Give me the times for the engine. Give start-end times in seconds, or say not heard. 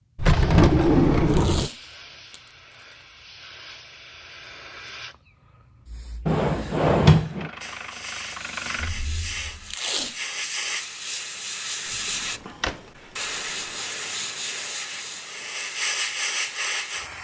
7.3-9.8.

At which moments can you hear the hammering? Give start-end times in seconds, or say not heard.
not heard.